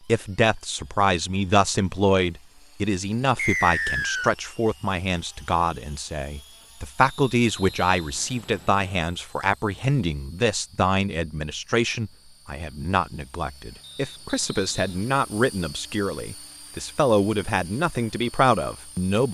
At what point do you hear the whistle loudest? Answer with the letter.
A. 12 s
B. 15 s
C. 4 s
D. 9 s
C.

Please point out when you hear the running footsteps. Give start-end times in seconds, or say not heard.
not heard.